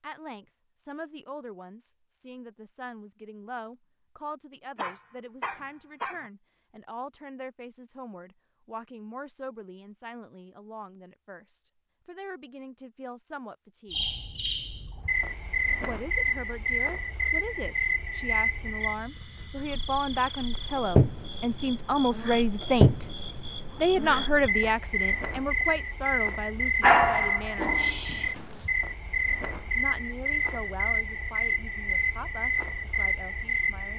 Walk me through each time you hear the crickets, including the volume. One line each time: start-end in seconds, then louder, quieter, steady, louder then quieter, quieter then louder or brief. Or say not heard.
13.9-33.9 steady.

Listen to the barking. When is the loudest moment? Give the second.
27 s.